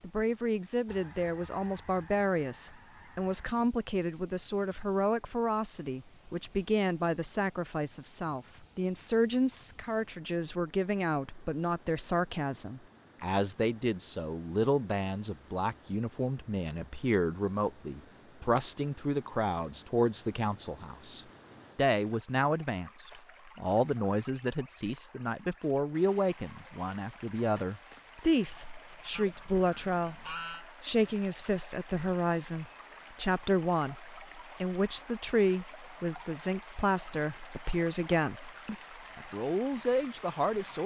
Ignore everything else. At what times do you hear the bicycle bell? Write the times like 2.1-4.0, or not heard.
not heard.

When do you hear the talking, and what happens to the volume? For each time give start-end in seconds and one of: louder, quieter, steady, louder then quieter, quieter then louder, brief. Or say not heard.
0.0-40.8 steady.